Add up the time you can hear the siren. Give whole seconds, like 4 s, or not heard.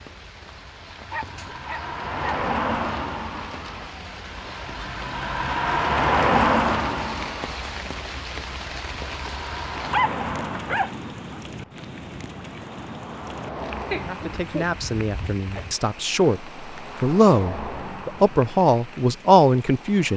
not heard.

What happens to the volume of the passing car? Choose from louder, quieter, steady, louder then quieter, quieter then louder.
louder then quieter.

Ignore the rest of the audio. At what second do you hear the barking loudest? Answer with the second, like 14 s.
10 s.